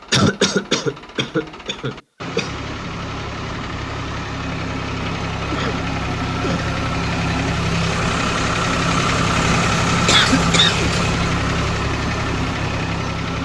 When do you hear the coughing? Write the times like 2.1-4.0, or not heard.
0.1-2.5, 5.5-6.7, 10.1-11.1.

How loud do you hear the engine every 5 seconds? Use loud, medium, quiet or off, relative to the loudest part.
medium, loud, loud.